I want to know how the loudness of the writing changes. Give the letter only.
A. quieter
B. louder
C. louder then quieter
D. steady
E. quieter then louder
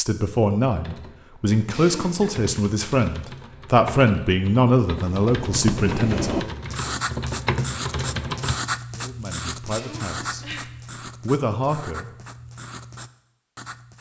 A.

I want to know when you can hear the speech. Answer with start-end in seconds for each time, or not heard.
0.0-6.5, 8.9-10.4, 11.2-12.1.